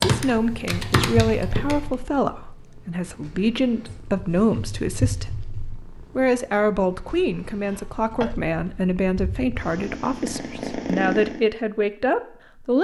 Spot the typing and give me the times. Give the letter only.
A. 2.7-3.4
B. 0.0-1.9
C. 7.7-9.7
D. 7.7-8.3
B.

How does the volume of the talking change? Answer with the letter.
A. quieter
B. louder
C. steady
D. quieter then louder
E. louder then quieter
C.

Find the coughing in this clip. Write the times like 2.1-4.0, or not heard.
7.7-8.3.